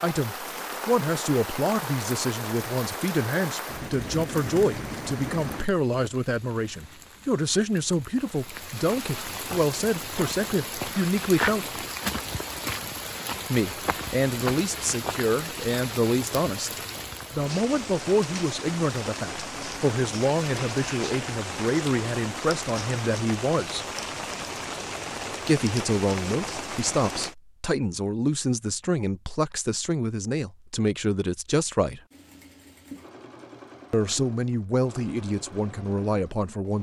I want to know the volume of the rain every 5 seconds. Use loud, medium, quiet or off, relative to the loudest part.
loud, medium, loud, loud, loud, loud, off, off.